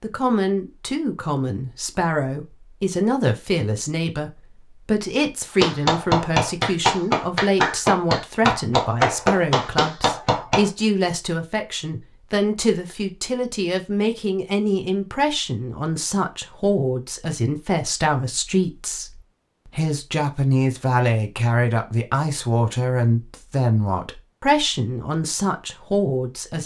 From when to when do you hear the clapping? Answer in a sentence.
The clapping can be heard from 5.6 to 10.7 s.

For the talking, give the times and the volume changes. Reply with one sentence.
You can hear the talking from 0.0 to 26.6 s, at a steady volume.